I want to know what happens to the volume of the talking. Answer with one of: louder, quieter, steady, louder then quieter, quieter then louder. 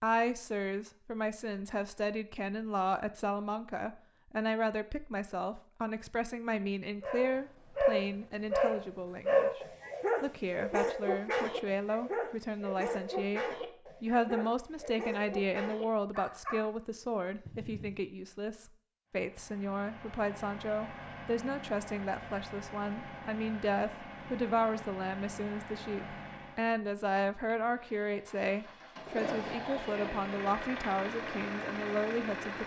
steady.